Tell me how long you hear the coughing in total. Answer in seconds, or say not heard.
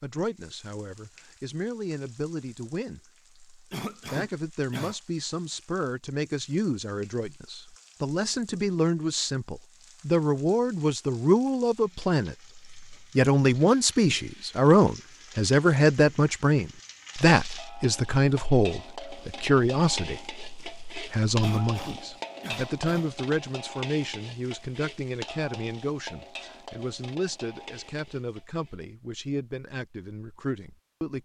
3 s.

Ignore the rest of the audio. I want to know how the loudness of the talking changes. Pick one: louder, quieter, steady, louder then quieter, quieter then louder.
louder then quieter.